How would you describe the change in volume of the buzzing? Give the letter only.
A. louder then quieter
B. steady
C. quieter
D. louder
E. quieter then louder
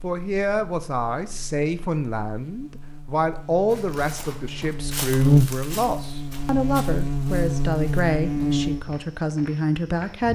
D.